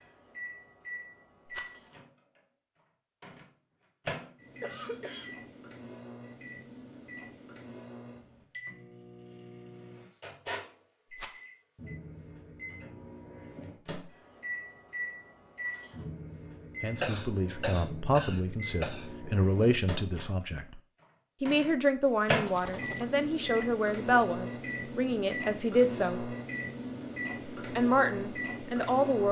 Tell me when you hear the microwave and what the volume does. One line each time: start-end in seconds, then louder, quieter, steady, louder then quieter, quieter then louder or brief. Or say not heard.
0.0-29.2 louder.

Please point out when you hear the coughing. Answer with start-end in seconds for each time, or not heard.
4.6-5.3, 17.0-19.1.